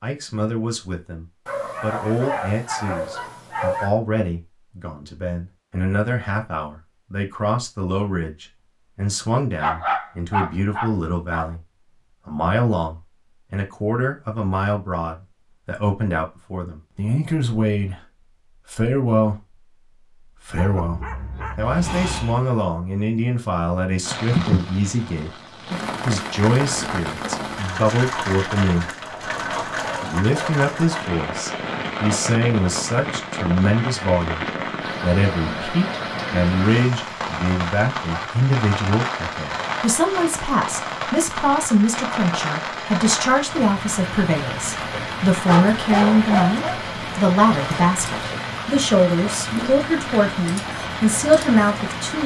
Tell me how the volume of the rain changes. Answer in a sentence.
The volume of the rain stays about the same.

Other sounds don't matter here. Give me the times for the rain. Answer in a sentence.
The rain can be heard from 24.0 to 52.2 s.